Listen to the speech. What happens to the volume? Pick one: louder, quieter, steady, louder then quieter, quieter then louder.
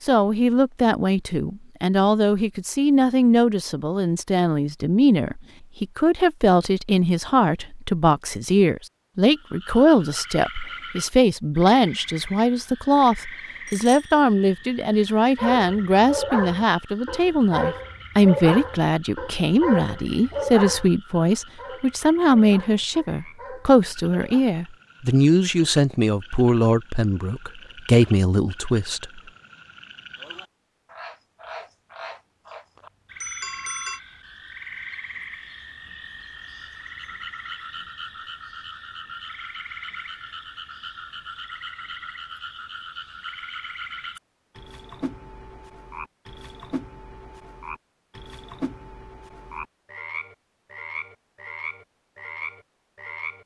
steady.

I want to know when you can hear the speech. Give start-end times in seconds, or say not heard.
0.0-29.2.